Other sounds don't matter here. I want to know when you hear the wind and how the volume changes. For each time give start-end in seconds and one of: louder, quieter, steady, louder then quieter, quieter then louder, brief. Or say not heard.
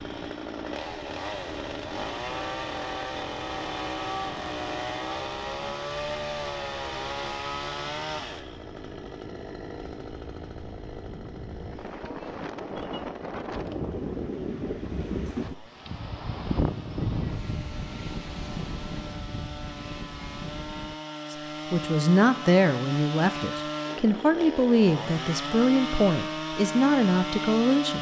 0.0-20.9 louder.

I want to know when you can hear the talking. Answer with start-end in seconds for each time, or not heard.
21.3-27.9.